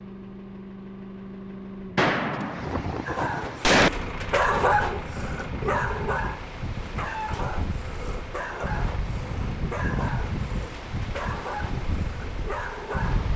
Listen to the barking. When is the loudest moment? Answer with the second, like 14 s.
5 s.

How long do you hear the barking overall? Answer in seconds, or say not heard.
10 s.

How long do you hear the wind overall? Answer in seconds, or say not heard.
11 s.